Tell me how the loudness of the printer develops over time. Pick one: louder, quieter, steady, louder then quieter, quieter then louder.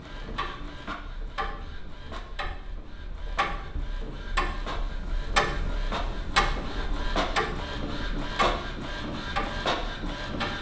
louder.